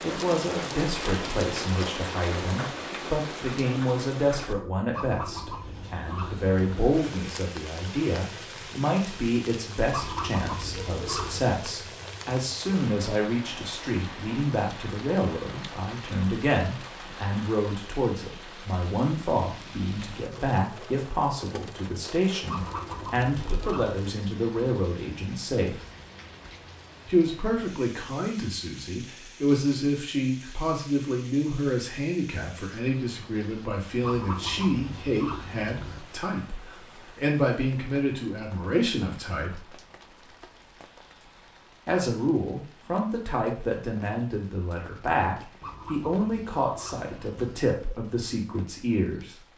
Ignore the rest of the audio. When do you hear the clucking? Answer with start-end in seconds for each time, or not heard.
4.9-7.0, 9.9-11.6, 22.4-23.9, 34.0-36.0, 45.6-47.6.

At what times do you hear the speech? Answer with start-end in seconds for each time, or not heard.
0.0-25.8, 27.1-39.7, 41.9-49.4.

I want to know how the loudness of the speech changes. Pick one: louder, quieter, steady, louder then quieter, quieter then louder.
steady.